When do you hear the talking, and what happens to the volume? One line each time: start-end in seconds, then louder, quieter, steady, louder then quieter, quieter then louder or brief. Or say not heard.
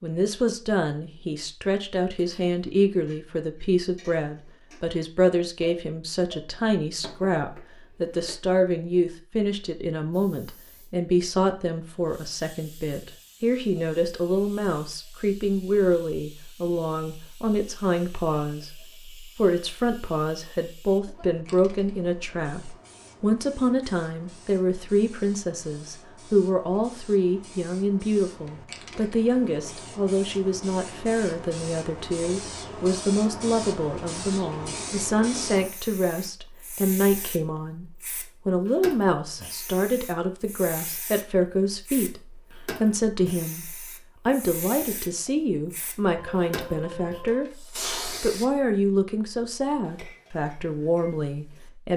0.0-37.9 steady
38.5-51.9 steady.